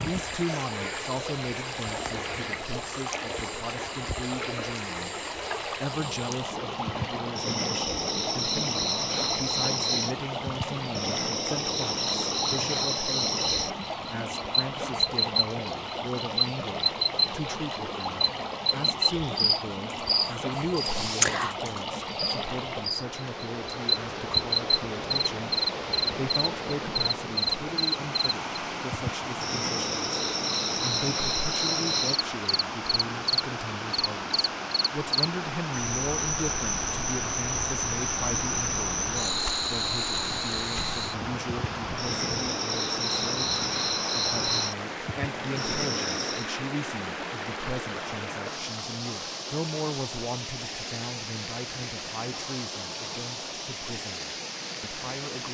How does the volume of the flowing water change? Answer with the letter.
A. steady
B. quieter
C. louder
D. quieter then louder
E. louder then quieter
A.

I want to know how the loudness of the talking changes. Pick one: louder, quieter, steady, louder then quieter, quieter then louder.
steady.